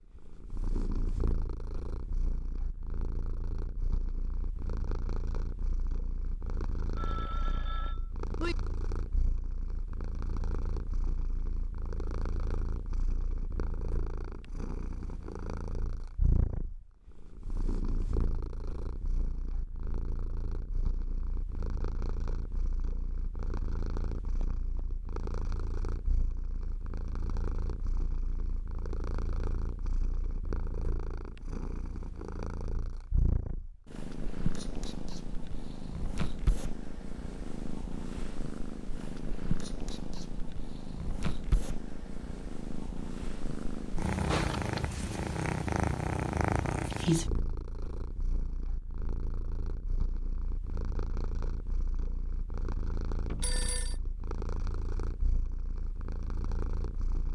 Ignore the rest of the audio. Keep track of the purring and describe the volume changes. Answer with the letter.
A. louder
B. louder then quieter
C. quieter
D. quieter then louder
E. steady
A.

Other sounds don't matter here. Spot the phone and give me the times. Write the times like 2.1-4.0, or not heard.
7.0-8.6, 53.3-54.0.